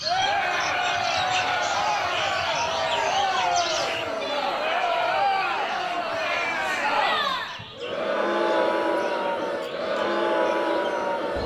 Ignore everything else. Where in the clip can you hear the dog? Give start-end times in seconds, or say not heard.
not heard.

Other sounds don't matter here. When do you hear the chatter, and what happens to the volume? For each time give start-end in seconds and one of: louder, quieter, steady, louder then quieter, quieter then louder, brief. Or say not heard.
0.0-11.4 steady.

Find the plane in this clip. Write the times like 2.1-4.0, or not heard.
not heard.